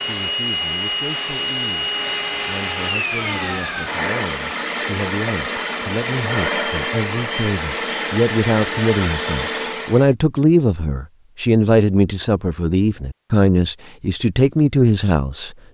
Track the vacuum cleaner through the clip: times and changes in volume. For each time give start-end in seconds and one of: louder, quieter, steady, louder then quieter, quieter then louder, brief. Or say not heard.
0.0-10.1 steady.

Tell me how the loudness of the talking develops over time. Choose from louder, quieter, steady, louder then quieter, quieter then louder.
louder.